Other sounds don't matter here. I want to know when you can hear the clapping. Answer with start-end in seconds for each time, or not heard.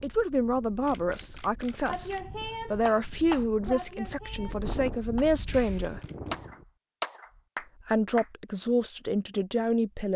1.9-8.2.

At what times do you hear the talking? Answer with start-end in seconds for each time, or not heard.
0.0-6.0, 7.8-10.1.